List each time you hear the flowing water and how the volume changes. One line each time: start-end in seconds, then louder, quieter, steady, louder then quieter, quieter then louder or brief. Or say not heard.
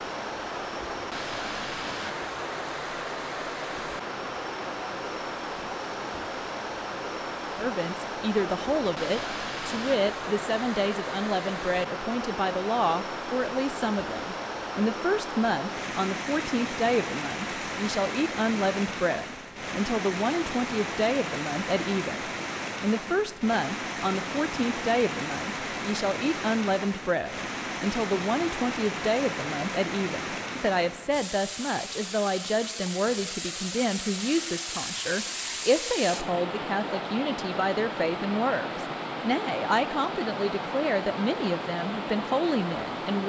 0.0-43.2 steady.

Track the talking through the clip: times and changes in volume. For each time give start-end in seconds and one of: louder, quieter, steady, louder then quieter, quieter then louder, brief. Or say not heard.
7.5-43.2 steady.